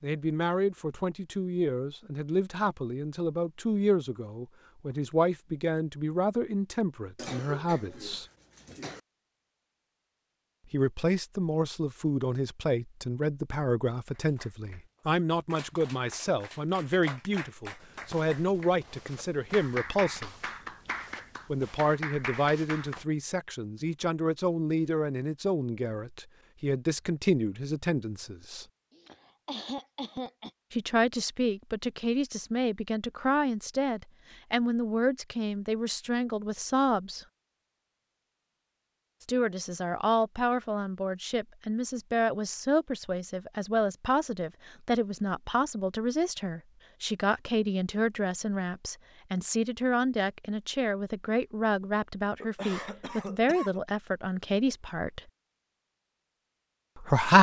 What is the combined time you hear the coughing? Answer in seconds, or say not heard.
5 s.